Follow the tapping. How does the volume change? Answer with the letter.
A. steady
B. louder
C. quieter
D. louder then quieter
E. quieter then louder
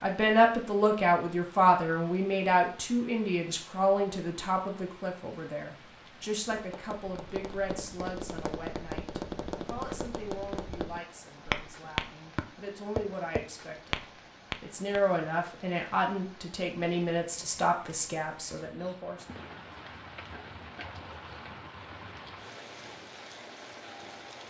B.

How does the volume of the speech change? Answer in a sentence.
The volume of the speech goes down, then up.